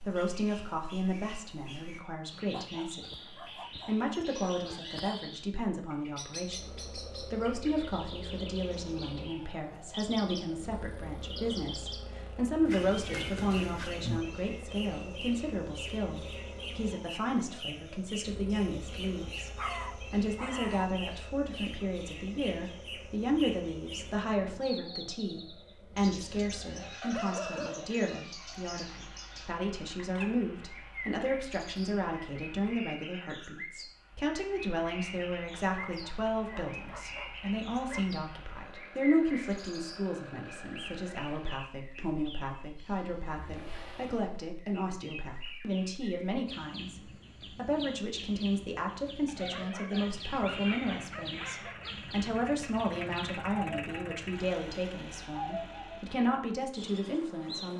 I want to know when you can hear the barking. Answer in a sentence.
The barking can be heard from 2.5 to 5.2 s, from 19.6 to 20.9 s, from 27.0 to 28.1 s, from 35.7 to 38.1 s and from 49.2 to 52.0 s.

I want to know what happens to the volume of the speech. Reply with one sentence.
The loudness of the speech stays about the same.